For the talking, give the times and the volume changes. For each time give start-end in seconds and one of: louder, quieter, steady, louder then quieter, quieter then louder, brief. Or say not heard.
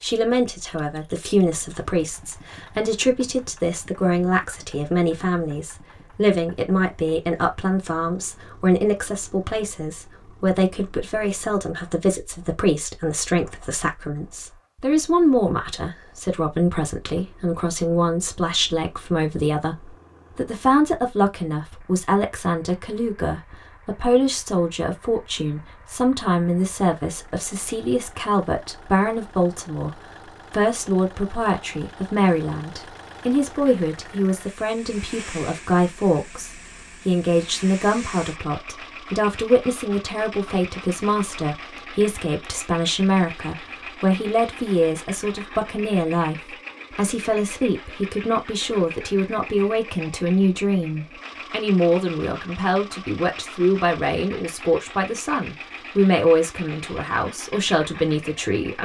0.0-58.8 steady.